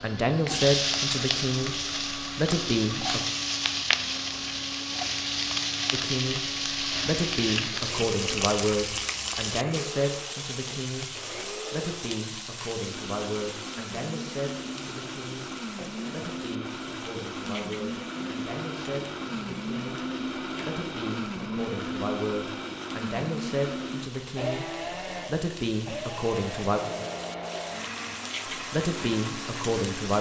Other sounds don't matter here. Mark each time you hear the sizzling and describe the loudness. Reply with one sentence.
The sizzling can be heard from 0.0 to 30.1 s, getting quieter then louder.